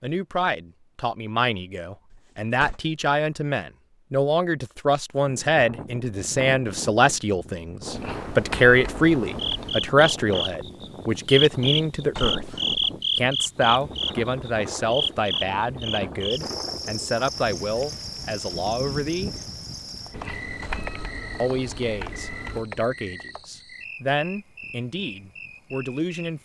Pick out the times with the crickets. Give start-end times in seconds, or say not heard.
9.3-26.4.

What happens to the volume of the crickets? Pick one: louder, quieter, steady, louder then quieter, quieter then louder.
quieter.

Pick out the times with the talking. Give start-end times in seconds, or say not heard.
0.0-12.5, 13.2-19.4, 21.4-26.4.